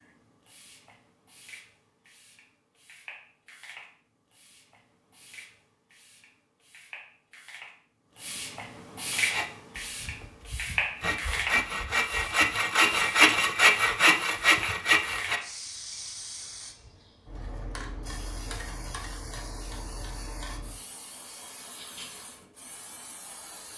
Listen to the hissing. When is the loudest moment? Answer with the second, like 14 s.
11 s.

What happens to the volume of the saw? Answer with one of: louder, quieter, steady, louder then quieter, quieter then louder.
louder.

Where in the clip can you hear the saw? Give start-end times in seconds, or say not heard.
9.1-15.4.